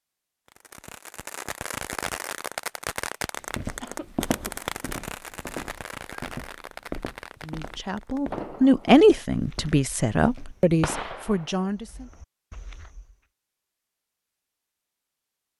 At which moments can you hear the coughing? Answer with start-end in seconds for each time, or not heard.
3.8-4.6.